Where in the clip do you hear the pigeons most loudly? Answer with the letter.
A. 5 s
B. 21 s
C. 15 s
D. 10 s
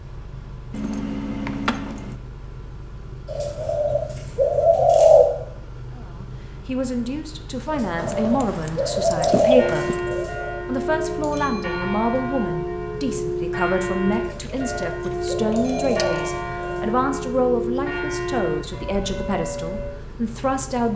A.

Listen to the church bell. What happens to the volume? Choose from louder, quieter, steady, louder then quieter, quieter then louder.
steady.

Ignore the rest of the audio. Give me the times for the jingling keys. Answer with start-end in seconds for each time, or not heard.
0.7-2.1, 8.0-10.2, 14.1-16.2.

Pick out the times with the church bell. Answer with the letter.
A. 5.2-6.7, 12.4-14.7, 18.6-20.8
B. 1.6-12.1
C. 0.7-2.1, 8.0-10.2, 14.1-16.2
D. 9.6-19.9
D.